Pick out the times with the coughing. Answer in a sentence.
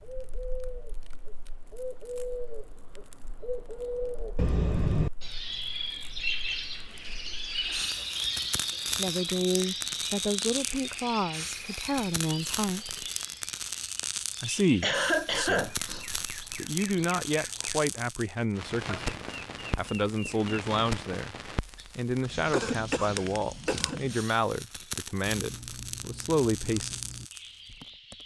You can hear the coughing from 4.3 to 5.1 s, from 14.8 to 16.1 s and from 22.5 to 24.0 s.